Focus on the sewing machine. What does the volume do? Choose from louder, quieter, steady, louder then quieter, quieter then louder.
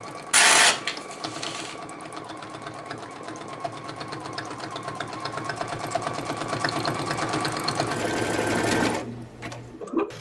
louder.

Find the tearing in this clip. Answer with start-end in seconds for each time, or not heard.
0.3-1.8.